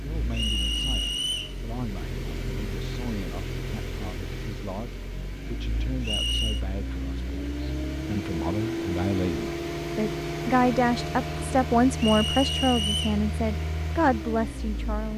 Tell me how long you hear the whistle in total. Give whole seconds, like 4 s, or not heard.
3 s.